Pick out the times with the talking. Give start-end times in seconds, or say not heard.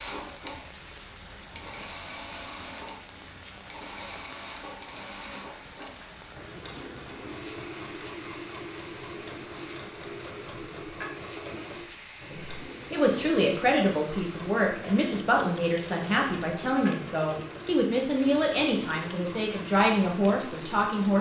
12.3-21.1.